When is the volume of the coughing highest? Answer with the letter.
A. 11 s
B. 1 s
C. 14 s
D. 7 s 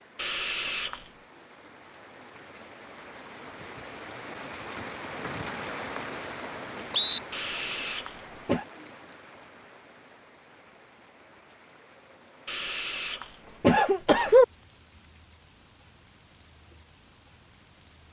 C.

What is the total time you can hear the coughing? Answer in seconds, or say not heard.
4 s.